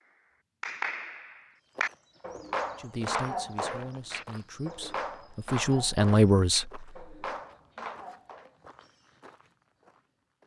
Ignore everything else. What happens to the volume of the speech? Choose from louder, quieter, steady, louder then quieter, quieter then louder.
louder.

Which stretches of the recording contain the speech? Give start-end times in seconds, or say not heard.
2.8-6.9.